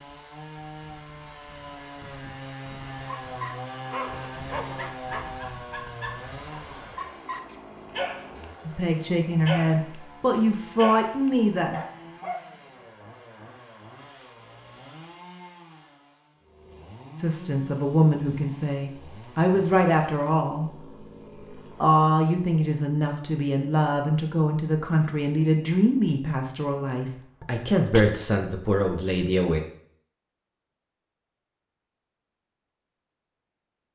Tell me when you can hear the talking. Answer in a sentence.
The talking can be heard from 8.7 to 11.8 s, from 17.1 to 20.7 s and from 21.8 to 29.6 s.